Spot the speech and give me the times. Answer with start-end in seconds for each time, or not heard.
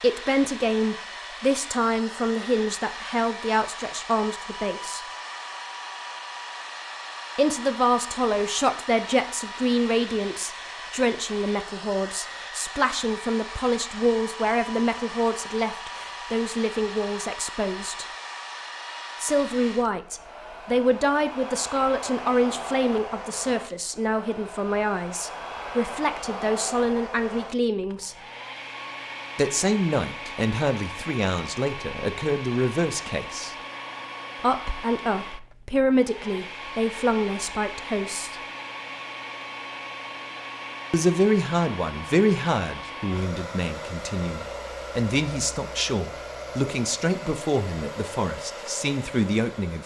0.0-5.0, 7.3-18.1, 19.2-28.1, 29.4-33.5, 34.4-38.4, 40.9-49.8.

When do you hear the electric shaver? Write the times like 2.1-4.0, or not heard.
not heard.